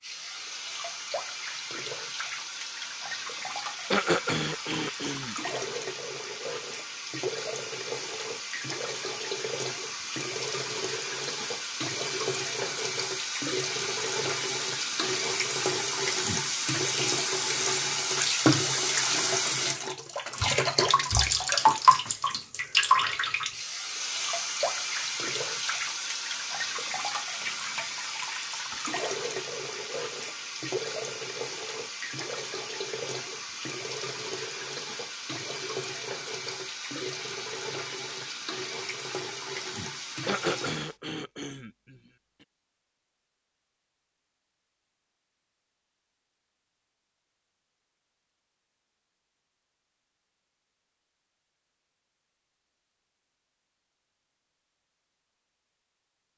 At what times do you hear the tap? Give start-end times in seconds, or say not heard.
0.0-41.0.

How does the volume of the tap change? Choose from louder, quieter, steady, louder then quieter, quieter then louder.
louder then quieter.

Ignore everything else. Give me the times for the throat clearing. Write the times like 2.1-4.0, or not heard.
3.9-5.6, 40.2-42.0.